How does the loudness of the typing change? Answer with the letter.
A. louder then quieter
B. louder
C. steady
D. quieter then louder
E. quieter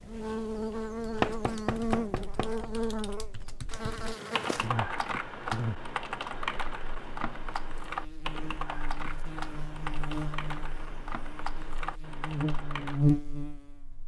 A.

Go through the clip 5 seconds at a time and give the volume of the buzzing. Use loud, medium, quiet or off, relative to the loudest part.
loud, medium, loud.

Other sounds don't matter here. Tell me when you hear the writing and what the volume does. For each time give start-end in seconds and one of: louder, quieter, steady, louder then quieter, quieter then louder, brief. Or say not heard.
not heard.